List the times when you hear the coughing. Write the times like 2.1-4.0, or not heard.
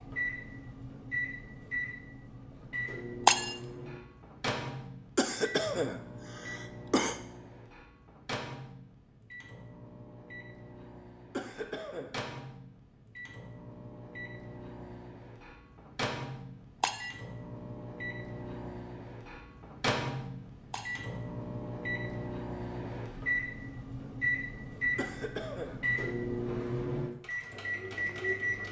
5.2-7.2, 11.3-12.2, 24.9-25.8.